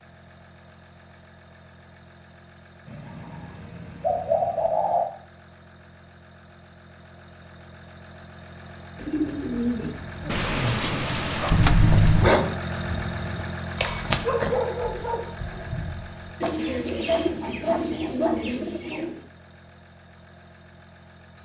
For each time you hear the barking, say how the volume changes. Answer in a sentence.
The barking can be heard from 11.4 to 18.6 s, getting quieter then louder.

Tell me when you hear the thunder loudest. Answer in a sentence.
The loudest moment of the thunder is at 12 seconds.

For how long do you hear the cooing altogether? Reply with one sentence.
The cooing can be heard for 7 seconds in total.